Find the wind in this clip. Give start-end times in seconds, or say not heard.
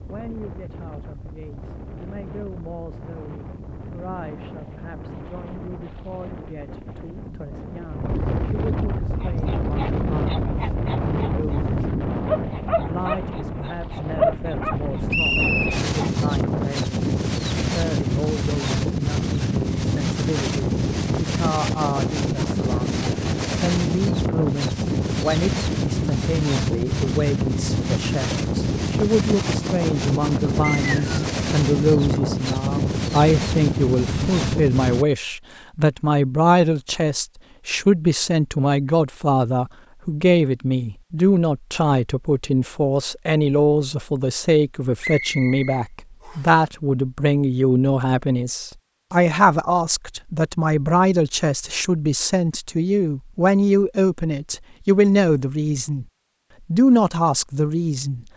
0.0-35.0.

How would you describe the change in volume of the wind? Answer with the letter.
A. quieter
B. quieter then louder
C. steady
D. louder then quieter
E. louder
E.